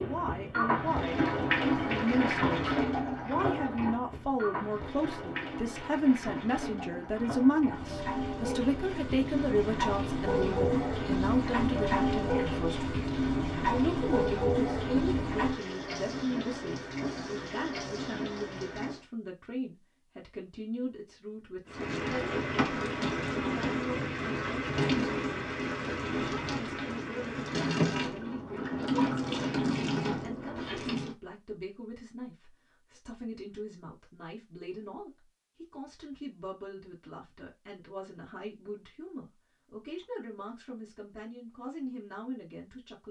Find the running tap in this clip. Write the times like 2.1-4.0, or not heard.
0.0-19.1, 21.6-31.1.